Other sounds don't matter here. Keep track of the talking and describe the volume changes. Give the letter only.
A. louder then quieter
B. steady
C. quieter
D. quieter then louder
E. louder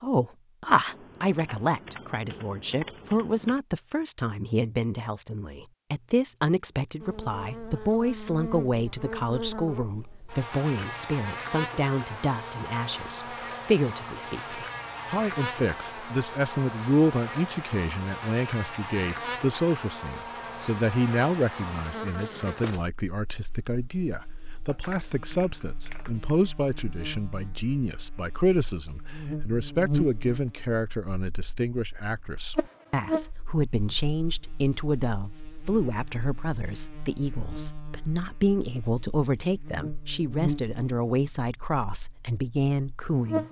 B.